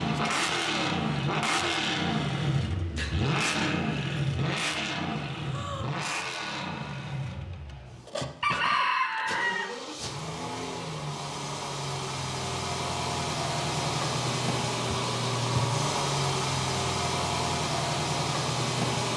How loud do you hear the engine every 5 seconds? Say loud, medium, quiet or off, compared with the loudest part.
loud, medium, loud, loud.